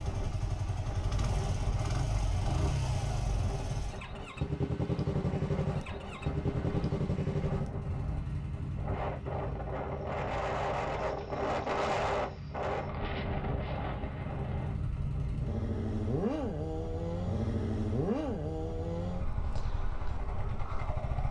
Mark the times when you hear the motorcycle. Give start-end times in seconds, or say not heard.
0.0-21.2.